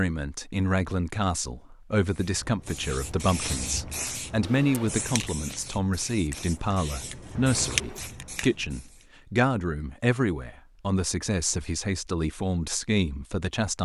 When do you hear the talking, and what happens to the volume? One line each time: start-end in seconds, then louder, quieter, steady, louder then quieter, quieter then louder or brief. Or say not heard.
0.0-13.8 steady.